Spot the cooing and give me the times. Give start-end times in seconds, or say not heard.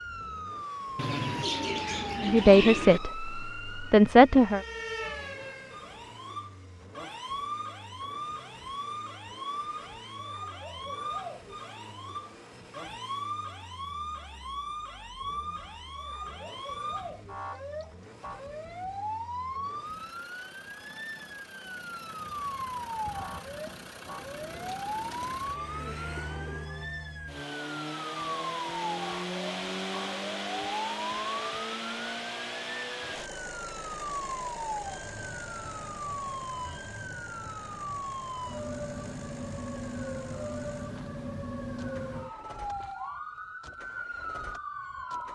0.9-3.0, 24.3-26.7.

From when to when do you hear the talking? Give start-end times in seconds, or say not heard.
2.2-4.6.